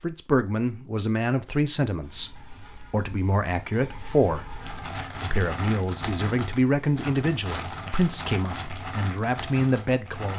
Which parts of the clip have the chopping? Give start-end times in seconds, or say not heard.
not heard.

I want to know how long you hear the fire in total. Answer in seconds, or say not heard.
6 s.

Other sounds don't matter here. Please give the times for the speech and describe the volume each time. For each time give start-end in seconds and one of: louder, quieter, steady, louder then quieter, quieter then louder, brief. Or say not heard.
0.0-10.3 steady.